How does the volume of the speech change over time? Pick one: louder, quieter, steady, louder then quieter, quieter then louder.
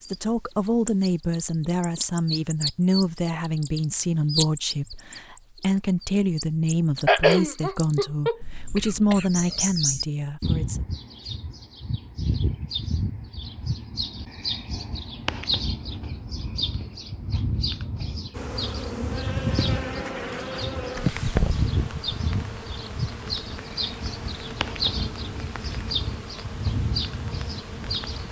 steady.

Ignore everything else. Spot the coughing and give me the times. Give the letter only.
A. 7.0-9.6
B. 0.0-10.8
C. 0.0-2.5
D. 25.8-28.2
A.